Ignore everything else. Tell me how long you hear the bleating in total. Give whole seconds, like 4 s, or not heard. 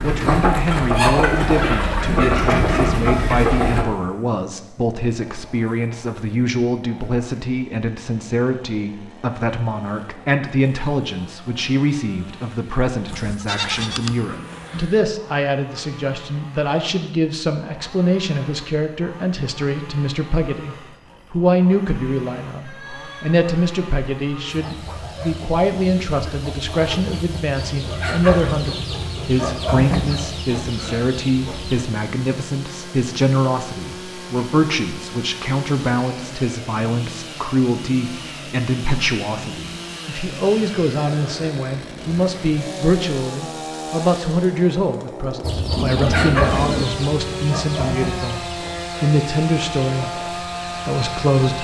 3 s.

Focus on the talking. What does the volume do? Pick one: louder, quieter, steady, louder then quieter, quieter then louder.
steady.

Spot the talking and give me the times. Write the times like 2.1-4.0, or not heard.
0.0-51.6.